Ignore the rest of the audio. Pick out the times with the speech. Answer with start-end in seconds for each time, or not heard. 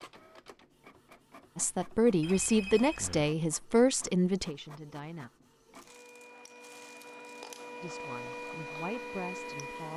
1.6-5.3, 7.8-9.9.